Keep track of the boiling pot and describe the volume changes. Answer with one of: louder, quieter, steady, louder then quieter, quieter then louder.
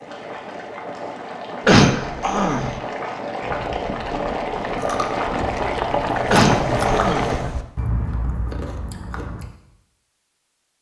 louder.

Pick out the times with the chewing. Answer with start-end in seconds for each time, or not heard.
3.4-9.4.